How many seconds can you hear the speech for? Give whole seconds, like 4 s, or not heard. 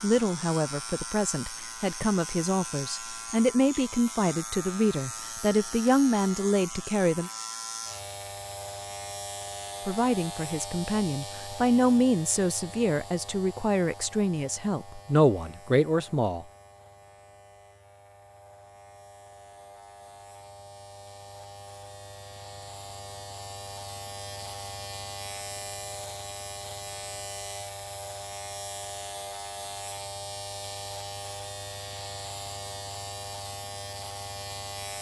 14 s.